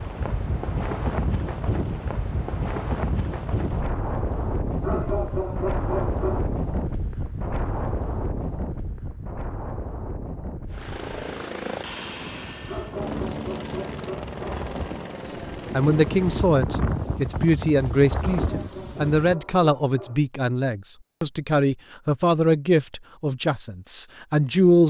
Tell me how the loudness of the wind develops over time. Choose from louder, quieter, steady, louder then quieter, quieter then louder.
quieter then louder.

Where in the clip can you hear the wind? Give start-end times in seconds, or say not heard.
0.0-19.4.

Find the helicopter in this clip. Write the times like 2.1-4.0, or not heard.
10.7-16.6.